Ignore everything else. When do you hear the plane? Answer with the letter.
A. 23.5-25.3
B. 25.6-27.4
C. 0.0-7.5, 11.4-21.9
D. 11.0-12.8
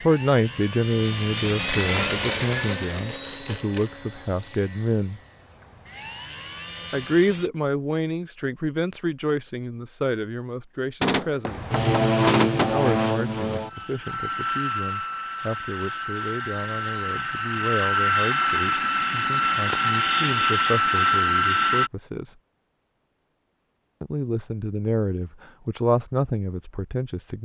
C.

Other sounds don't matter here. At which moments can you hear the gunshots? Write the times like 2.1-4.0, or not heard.
11.0-12.8.